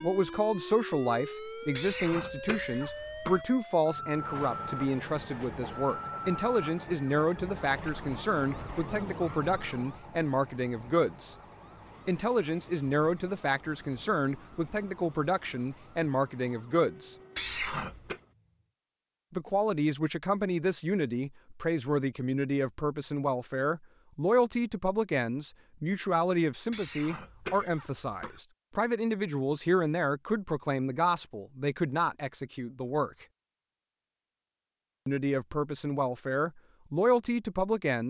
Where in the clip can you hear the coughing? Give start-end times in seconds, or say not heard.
1.8-3.5, 17.4-18.2, 26.7-28.4.